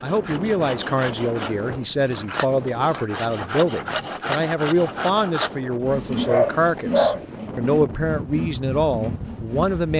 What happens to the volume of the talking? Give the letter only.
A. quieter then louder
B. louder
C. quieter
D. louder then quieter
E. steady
E.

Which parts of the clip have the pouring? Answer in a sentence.
The pouring can't be heard in this clip.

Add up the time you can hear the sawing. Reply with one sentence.
The sawing can be heard for 10 seconds in total.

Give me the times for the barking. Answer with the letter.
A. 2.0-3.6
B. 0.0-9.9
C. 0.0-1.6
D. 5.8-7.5
D.